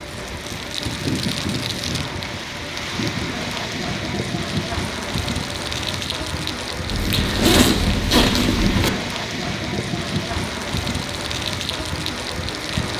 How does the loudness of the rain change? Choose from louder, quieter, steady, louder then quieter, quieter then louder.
steady.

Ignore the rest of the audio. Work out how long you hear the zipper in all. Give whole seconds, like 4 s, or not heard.
2 s.